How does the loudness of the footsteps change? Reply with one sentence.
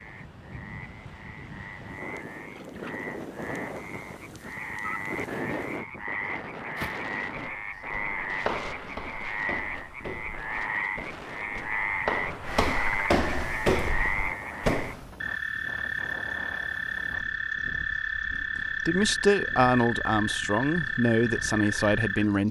The volume of the footsteps goes down, then up.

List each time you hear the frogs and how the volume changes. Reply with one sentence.
The frogs can be heard from 0.0 to 22.4 s, getting louder.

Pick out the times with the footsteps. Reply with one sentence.
The footsteps can be heard from 6.8 to 14.9 s.